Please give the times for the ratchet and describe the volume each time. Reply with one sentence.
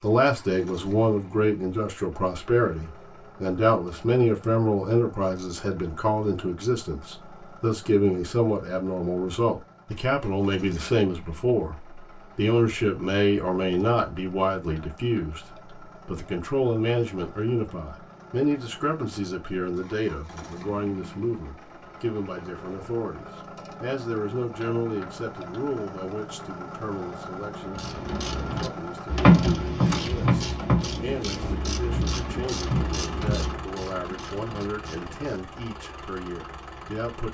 You can hear the ratchet from 27.6 to 35.4 s, getting quieter.